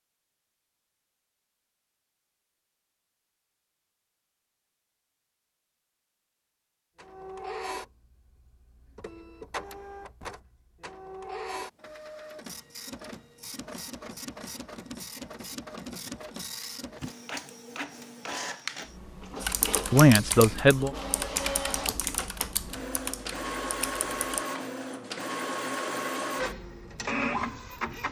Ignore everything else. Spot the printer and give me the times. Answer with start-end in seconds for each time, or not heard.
7.0-28.0.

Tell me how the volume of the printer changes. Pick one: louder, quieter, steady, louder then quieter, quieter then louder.
louder.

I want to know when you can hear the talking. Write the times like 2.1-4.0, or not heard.
19.9-20.9.